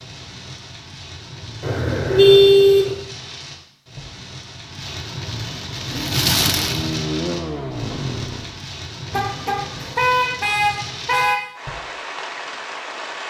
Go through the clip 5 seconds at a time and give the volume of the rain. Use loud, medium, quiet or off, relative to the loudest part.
medium, loud, medium.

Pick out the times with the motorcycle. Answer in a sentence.
The motorcycle can be heard from 5.7 to 8.6 s.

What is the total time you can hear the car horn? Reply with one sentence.
You can hear the car horn for 4 seconds altogether.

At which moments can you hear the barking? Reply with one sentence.
You can't hear the barking here.